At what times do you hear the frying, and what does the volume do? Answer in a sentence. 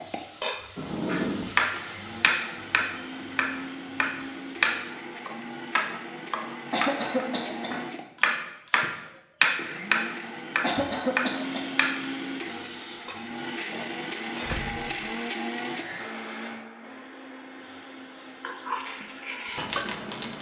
You can hear the frying from 0.0 to 5.0 s, getting quieter; briefly from 12.3 to 14.7 s; and briefly from 17.5 to 20.3 s.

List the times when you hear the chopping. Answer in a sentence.
The chopping can be heard from 1.1 to 12.1 s.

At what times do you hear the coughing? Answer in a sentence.
The coughing can be heard from 6.7 to 7.8 s and from 10.6 to 11.8 s.